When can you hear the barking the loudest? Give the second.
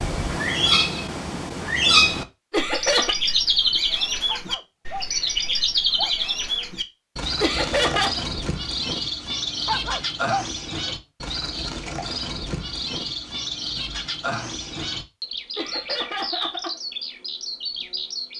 10 s.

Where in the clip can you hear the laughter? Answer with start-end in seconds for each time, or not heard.
2.5-3.1, 7.4-8.2, 15.6-16.8.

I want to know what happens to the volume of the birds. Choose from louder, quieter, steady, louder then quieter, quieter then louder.
quieter.